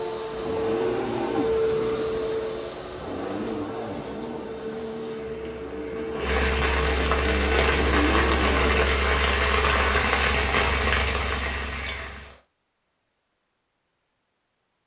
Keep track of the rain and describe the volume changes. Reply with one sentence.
The loudness of the rain goes up.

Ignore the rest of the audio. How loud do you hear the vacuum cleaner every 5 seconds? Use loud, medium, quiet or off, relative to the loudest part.
loud, loud, off.